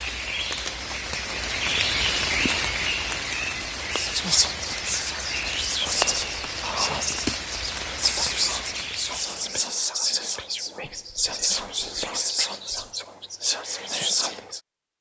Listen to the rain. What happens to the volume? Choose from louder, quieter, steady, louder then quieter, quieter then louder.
quieter.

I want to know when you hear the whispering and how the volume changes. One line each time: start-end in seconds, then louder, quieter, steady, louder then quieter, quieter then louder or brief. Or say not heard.
3.8-14.6 steady.